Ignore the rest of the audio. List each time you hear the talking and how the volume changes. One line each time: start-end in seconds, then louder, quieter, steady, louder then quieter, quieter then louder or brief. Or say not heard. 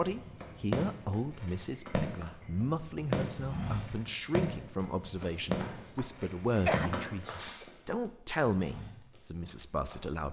0.0-10.2 steady.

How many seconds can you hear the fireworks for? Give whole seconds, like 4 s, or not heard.
8 s.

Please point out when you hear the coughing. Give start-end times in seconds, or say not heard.
6.2-7.7.